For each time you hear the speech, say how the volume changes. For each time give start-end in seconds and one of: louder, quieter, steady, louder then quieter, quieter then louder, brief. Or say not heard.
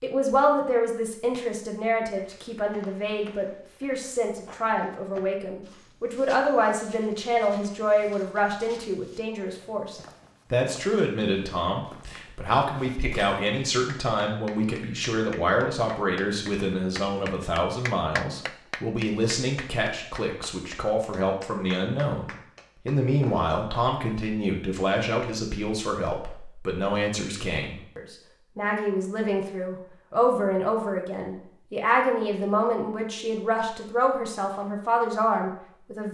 0.0-36.0 steady.